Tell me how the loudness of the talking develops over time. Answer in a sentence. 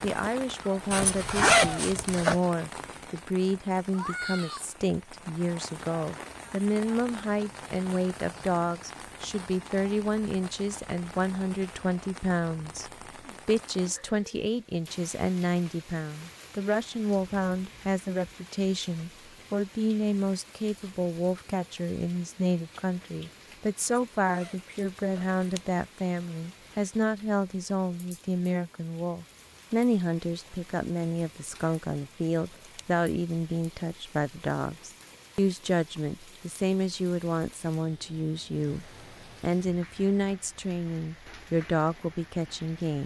The volume of the talking stays about the same.